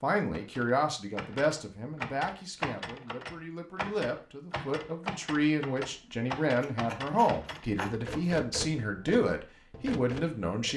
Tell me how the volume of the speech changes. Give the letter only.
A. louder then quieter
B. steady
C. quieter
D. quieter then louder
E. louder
D.